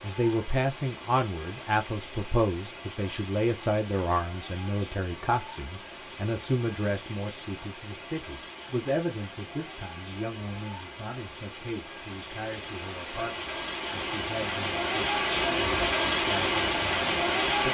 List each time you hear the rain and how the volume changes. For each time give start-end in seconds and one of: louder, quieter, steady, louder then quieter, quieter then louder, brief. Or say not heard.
0.0-17.6 louder.